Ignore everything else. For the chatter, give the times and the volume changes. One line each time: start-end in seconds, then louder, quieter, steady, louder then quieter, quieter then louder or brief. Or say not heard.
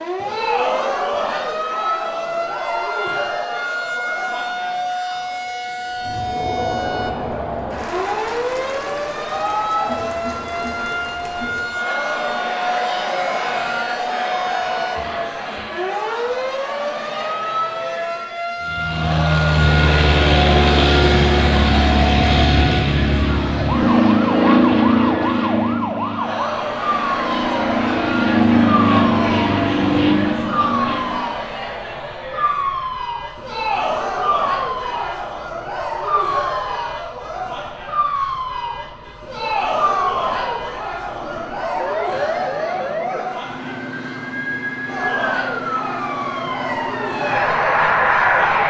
0.0-48.6 steady.